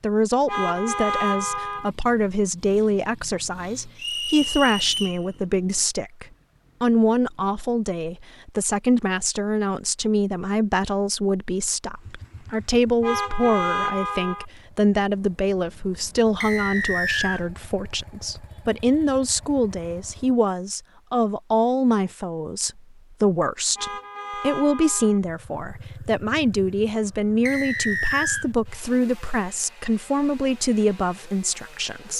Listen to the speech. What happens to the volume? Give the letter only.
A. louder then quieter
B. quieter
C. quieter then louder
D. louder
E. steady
E.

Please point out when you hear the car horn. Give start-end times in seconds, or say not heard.
0.5-1.9, 13.0-14.4, 23.8-25.2.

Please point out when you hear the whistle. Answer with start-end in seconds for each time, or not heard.
4.0-5.2, 16.4-17.4, 27.4-28.4.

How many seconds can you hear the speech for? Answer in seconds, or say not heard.
32 s.